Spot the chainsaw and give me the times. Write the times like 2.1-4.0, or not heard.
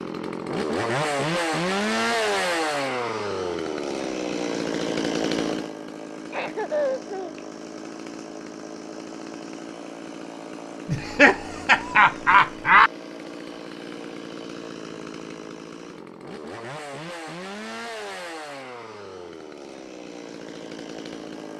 0.0-21.5.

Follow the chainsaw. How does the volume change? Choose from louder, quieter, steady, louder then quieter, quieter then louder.
quieter.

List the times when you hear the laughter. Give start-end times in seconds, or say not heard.
6.3-7.4, 10.9-12.9.